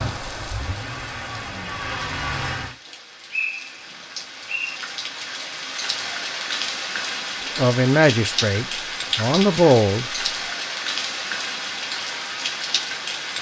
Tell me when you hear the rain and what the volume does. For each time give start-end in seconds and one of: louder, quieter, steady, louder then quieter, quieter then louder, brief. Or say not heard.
0.0-13.3 louder.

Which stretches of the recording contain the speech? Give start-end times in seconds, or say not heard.
7.5-10.1.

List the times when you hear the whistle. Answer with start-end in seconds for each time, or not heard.
3.3-4.8.